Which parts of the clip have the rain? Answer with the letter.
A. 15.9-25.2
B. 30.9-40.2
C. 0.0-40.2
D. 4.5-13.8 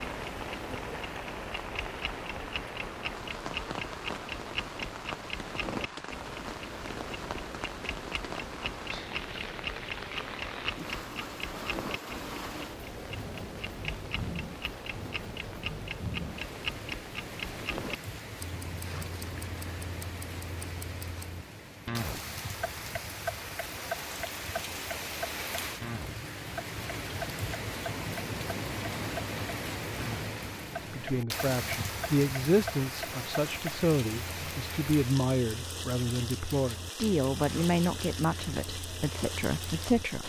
C.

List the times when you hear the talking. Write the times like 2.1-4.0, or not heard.
30.9-40.2.